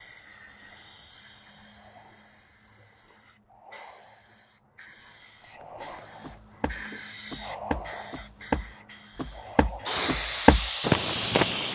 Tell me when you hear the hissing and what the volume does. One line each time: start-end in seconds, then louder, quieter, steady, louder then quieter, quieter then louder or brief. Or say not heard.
0.0-11.7 quieter then louder.